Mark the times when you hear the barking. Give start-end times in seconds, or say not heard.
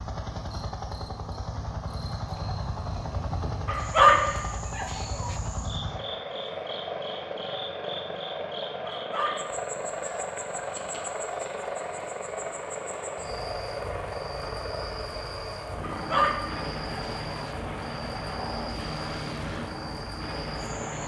3.6-5.3, 8.8-10.2, 15.8-17.2.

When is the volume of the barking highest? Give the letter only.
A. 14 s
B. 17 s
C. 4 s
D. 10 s
C.